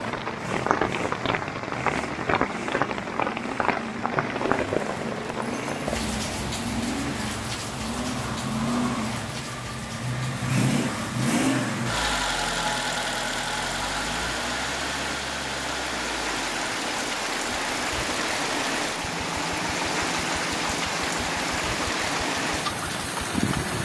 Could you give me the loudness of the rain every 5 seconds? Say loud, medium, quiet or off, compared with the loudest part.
loud, medium, medium, loud, loud.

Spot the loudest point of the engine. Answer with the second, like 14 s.
11 s.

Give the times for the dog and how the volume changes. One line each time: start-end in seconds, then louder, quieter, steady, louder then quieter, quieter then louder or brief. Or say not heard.
not heard.